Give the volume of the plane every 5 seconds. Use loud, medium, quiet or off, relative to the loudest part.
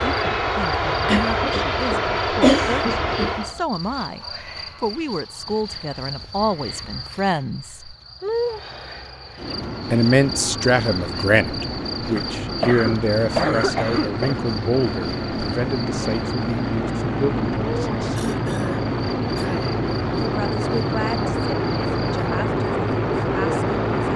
loud, quiet, medium, loud, loud.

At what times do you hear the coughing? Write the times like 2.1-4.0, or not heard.
1.1-3.6, 12.4-14.4, 18.1-19.6.